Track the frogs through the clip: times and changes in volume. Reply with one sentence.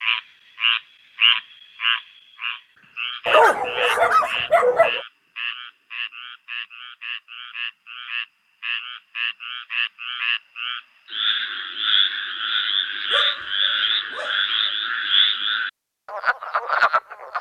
The frogs can be heard from 0.0 to 17.3 s, getting quieter then louder.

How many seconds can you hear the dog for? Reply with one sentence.
You can hear the dog for 3 seconds altogether.